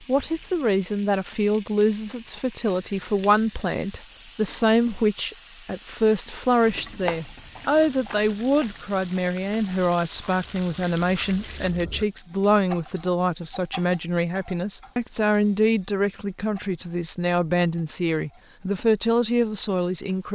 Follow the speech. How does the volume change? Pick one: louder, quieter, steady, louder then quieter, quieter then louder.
steady.